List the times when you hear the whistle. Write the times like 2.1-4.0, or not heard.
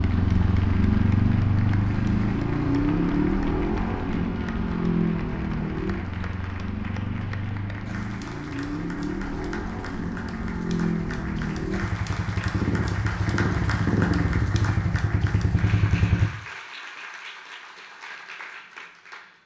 not heard.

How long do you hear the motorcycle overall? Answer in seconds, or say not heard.
16 s.